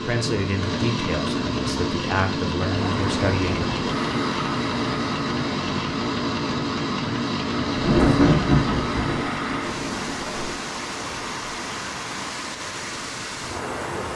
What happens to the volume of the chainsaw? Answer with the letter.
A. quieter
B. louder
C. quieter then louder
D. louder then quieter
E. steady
A.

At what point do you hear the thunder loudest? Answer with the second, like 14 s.
8 s.